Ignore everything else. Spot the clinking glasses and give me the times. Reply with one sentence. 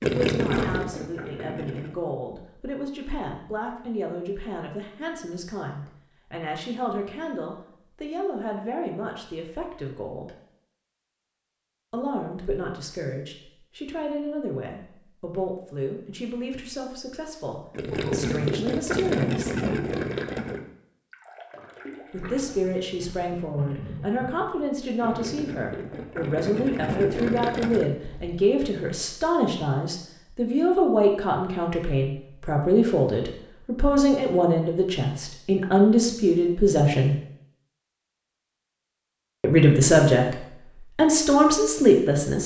The clinking glasses can't be heard in this clip.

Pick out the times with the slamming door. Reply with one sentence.
The slamming door can be heard from 0.5 to 0.9 s.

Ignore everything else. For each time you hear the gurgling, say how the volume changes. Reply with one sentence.
The gurgling can be heard briefly from 0.0 to 1.9 s; and from 17.7 to 28.4 s, getting quieter then louder.